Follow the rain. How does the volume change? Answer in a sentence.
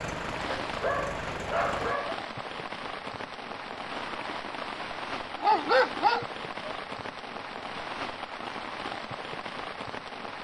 The loudness of the rain stays about the same.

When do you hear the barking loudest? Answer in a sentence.
The loudest moment of the barking is at 6 seconds.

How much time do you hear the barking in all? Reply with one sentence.
You can hear the barking for 3 seconds altogether.